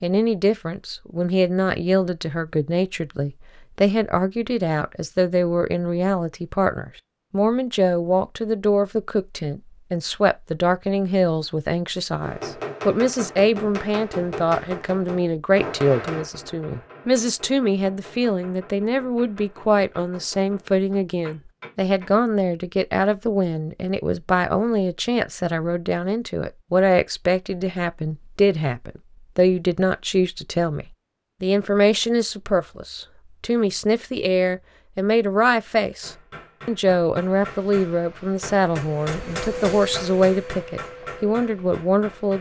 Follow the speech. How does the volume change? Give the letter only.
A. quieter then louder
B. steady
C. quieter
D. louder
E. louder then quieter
B.